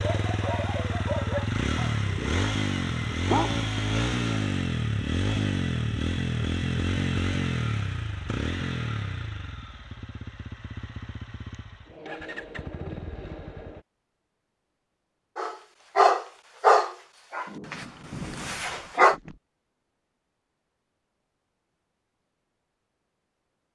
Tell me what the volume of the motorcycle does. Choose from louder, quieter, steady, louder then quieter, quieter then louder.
quieter.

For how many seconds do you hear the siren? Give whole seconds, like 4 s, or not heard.
not heard.